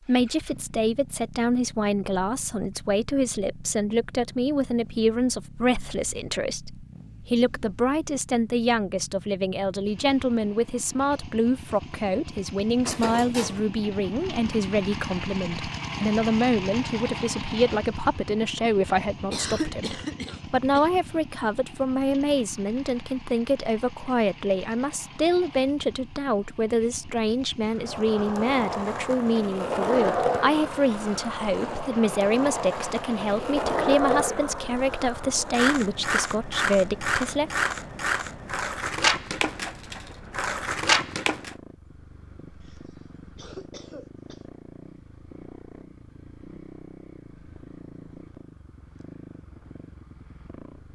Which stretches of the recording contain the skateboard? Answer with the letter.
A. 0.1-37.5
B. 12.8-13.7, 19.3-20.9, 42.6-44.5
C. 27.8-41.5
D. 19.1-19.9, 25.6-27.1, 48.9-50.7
C.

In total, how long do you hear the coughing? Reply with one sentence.
You can hear the coughing for 4 seconds altogether.